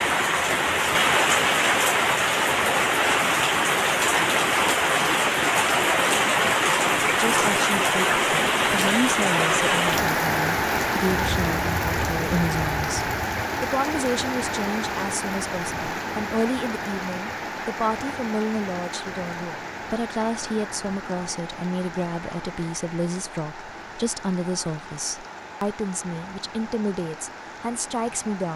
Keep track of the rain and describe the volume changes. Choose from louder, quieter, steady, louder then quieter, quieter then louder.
quieter.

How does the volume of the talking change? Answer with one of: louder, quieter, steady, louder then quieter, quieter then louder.
steady.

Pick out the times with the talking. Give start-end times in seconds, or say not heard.
7.1-28.5.